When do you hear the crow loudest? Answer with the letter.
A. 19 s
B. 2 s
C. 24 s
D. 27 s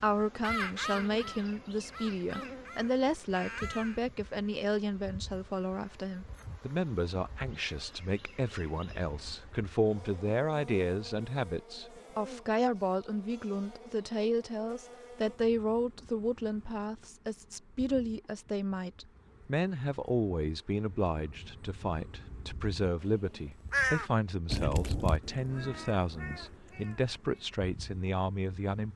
C.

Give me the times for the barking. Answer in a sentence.
The barking can't be heard in this clip.